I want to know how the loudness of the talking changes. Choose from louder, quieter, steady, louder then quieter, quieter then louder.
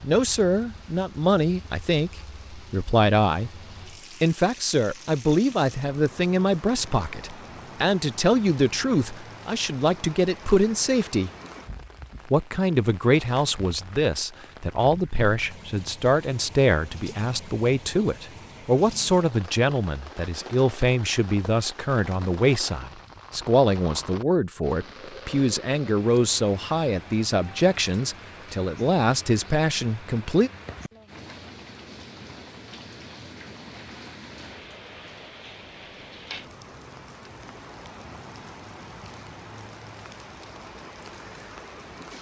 steady.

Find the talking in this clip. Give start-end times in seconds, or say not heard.
0.0-3.5, 4.2-11.3, 12.2-30.5.